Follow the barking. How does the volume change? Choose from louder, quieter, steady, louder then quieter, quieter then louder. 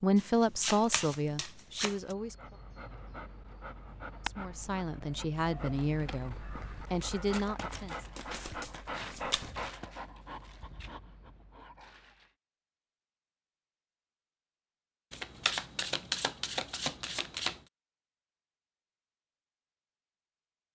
louder then quieter.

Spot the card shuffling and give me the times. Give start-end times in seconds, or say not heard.
0.1-2.1, 8.2-9.8, 15.1-17.6.